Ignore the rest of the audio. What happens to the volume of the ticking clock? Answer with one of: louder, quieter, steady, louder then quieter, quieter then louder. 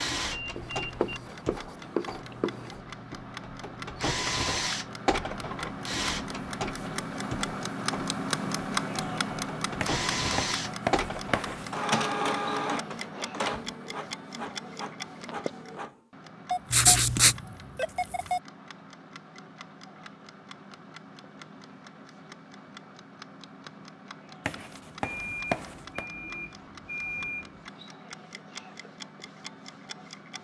louder then quieter.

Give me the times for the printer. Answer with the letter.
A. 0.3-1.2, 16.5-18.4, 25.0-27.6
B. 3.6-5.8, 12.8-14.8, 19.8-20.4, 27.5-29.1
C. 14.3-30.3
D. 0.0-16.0
D.